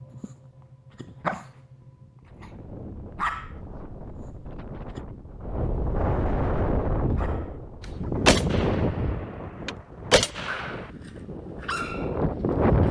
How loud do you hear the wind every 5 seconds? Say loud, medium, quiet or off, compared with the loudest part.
quiet, loud, loud.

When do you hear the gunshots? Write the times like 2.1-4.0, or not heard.
8.2-10.8.